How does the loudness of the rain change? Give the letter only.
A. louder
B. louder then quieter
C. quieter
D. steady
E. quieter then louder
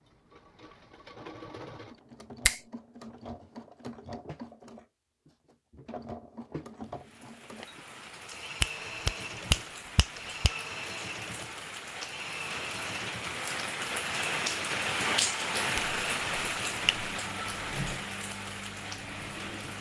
B.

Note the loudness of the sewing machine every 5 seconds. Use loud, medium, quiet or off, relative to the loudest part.
medium, loud, loud, loud.